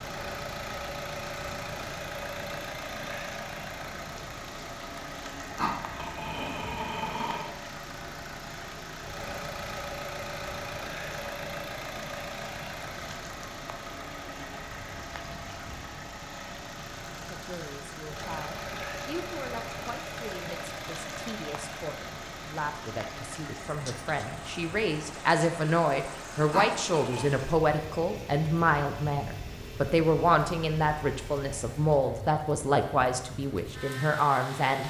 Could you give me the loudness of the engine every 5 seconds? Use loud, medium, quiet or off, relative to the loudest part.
loud, loud, loud, loud, loud, medium, medium.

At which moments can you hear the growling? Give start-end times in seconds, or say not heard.
5.5-7.5, 26.5-27.3.